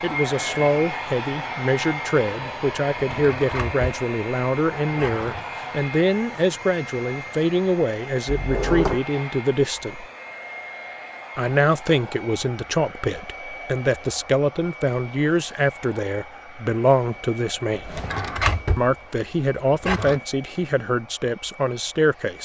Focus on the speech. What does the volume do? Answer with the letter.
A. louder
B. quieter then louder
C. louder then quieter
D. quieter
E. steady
E.